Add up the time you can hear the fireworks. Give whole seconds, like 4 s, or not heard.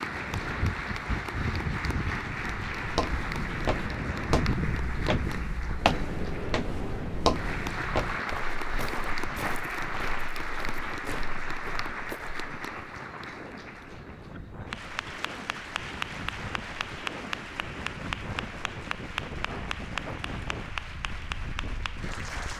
not heard.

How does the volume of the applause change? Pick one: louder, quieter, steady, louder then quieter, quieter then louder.
steady.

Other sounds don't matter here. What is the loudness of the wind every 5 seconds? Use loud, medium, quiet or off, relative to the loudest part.
loud, loud, medium, medium, medium.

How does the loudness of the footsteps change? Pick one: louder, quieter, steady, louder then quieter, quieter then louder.
quieter.